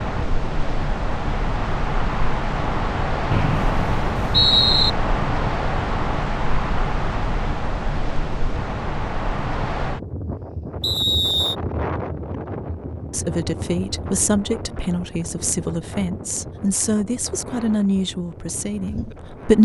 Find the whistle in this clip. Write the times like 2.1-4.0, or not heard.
3.3-4.9, 10.8-11.6.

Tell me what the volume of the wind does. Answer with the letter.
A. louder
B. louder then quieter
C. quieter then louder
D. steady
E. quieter
E.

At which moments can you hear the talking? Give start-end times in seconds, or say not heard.
13.1-19.5.